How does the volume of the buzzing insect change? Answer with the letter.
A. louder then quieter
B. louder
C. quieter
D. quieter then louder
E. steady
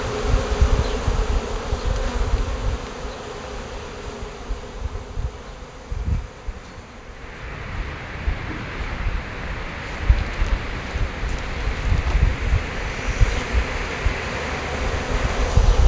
D.